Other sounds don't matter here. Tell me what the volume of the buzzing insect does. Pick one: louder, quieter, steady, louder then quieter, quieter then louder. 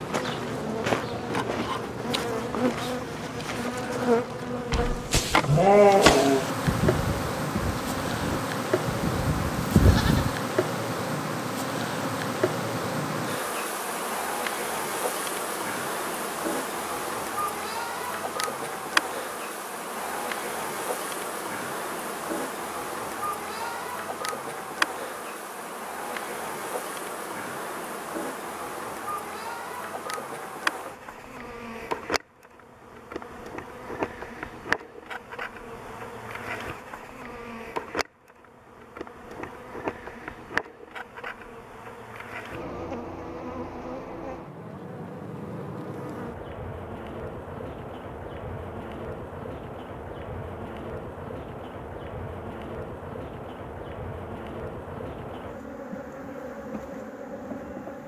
quieter.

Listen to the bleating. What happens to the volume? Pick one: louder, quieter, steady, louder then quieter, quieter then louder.
quieter then louder.